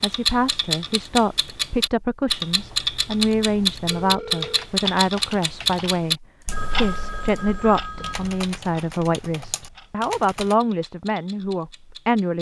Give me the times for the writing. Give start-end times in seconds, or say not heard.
not heard.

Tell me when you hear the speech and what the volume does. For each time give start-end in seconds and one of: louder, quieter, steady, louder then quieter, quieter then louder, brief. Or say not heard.
0.0-12.3 steady.